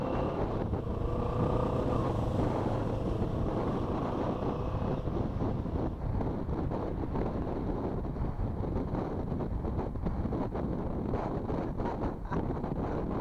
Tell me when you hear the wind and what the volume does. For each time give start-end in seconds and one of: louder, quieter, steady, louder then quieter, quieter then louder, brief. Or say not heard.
0.0-13.1 steady.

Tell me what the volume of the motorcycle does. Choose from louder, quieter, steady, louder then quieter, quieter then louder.
quieter.